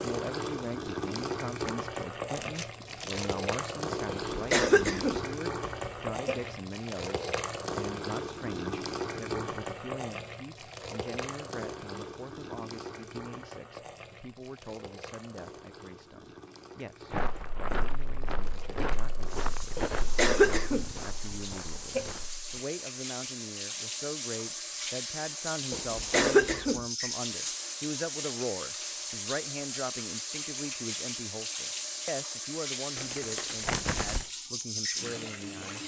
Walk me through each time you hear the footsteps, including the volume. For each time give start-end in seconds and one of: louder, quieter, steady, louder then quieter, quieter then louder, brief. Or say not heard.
17.1-22.6 quieter.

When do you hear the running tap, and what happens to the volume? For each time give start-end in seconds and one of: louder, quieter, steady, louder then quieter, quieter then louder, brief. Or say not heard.
0.0-35.8 quieter then louder.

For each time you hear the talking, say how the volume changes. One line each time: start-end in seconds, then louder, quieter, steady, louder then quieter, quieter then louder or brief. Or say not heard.
0.0-35.8 quieter then louder.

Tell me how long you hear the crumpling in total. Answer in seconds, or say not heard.
3 s.